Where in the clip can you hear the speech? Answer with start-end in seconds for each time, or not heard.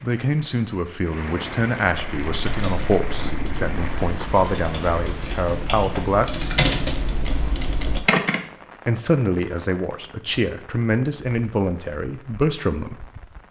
0.0-6.7, 8.8-12.9.